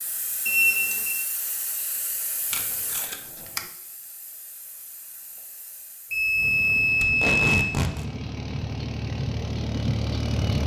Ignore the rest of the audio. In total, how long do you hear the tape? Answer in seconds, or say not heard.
2 s.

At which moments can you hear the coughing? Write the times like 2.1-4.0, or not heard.
not heard.